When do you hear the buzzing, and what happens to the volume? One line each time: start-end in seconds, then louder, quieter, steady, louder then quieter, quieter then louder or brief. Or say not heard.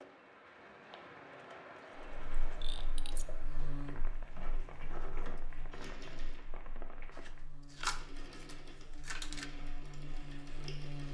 2.0-11.0 quieter then louder.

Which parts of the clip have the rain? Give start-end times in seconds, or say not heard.
0.0-7.5.